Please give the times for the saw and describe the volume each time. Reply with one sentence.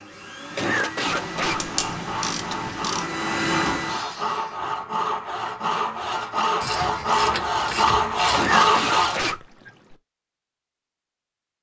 The saw can be heard from 0.7 to 9.3 s, getting louder.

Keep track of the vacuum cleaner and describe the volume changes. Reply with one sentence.
The loudness of the vacuum cleaner goes up.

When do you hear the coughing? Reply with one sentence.
You can hear the coughing from 0.5 to 1.7 s and from 8.2 to 9.9 s.